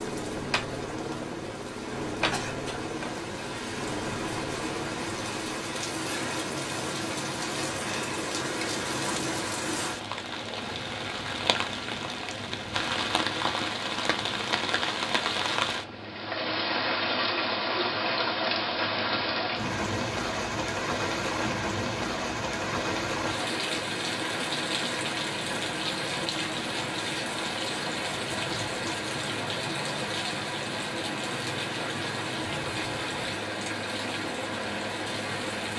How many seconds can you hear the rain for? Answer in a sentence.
You can hear the rain for 36 seconds altogether.